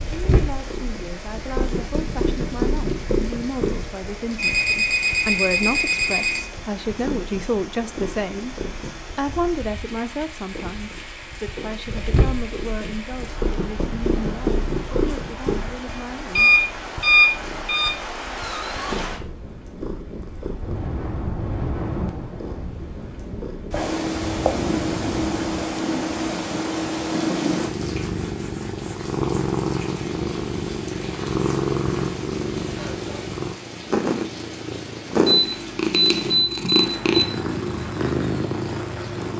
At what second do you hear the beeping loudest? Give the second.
17 s.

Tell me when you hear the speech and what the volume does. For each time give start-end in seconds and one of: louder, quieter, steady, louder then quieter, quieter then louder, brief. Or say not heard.
0.2-16.6 louder then quieter.